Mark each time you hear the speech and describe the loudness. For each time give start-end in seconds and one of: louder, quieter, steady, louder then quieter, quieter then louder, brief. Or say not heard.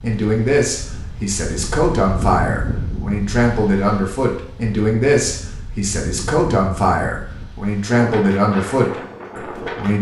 0.0-9.9 steady.